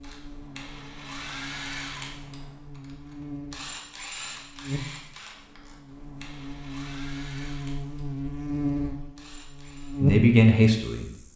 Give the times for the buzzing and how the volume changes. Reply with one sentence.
The buzzing can be heard from 0.0 to 11.3 s, getting louder.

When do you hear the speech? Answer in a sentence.
You can hear the speech from 10.0 to 11.1 s.